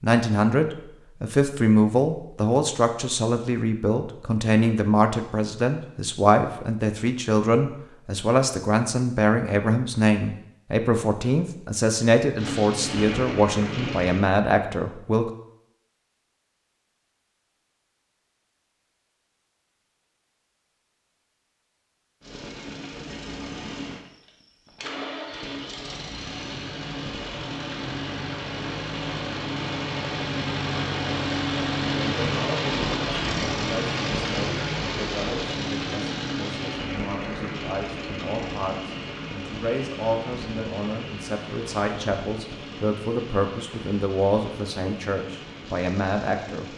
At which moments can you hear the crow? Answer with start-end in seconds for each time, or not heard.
not heard.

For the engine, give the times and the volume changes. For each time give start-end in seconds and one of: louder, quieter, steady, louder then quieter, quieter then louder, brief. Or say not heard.
12.3-14.2 brief
22.2-46.7 louder then quieter.